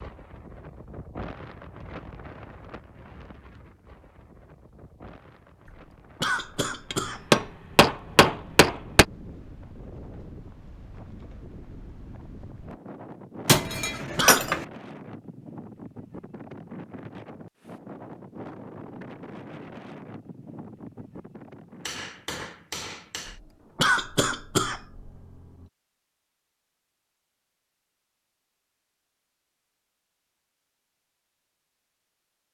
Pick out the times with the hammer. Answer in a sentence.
You can hear the hammer from 6.9 to 9.1 s, from 13.4 to 14.7 s and from 21.9 to 23.4 s.